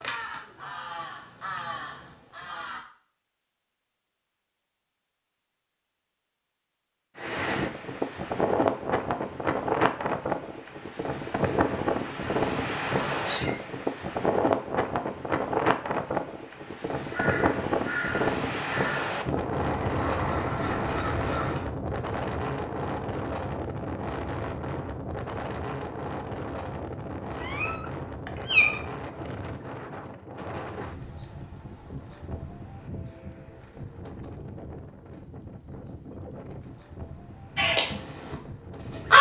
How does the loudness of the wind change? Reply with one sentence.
The volume of the wind goes down.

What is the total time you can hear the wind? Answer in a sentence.
You can hear the wind for 32 seconds altogether.